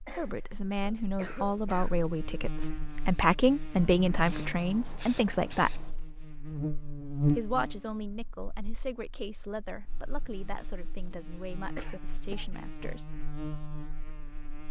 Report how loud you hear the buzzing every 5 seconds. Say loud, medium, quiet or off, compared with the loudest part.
medium, loud, medium.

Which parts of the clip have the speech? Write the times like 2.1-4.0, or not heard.
0.1-5.9, 7.3-13.2.